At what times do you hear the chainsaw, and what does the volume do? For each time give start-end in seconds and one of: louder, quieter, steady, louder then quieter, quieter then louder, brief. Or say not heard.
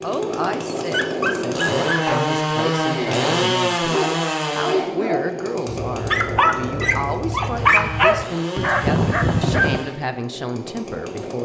0.0-11.4 quieter.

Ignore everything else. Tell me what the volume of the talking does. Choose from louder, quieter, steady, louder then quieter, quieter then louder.
steady.